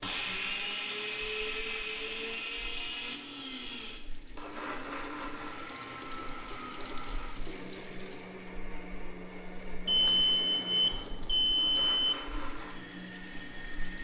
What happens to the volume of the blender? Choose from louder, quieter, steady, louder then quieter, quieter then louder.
quieter.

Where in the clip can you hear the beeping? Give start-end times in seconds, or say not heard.
9.8-12.2.